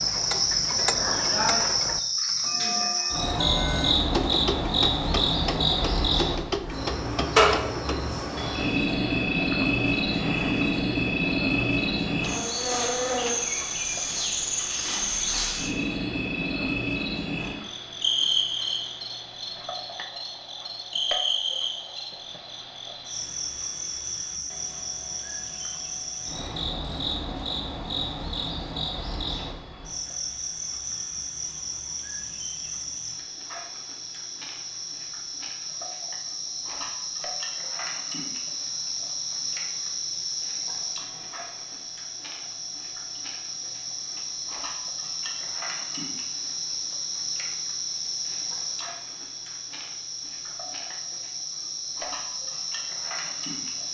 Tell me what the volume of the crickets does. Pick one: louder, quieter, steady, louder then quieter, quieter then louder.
quieter.